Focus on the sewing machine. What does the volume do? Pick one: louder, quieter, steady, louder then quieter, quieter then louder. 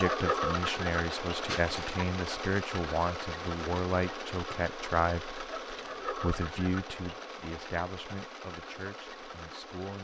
quieter.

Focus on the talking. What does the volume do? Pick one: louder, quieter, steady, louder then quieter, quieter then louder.
quieter.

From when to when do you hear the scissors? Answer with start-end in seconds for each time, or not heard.
1.4-2.0.